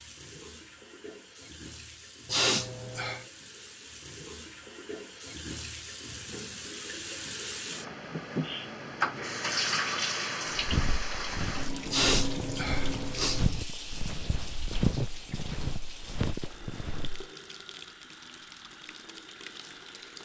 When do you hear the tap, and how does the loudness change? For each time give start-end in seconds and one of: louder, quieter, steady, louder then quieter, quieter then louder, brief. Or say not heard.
0.0-20.2 louder then quieter.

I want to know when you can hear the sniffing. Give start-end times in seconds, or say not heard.
2.2-3.2, 11.9-13.5.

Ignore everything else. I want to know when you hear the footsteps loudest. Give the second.
15 s.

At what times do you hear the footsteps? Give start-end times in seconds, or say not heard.
10.5-17.2.